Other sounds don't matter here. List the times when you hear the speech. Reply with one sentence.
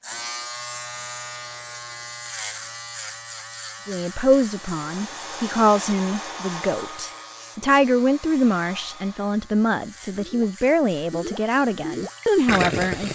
You can hear the speech from 3.9 to 13.0 s.